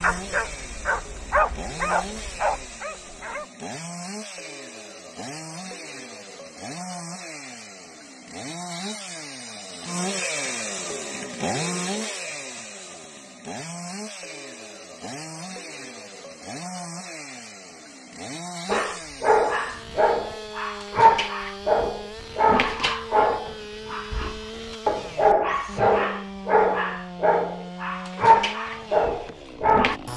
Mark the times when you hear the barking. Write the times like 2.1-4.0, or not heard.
0.0-3.5, 18.6-30.0.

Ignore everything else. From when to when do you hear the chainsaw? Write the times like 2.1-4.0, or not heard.
0.0-30.1.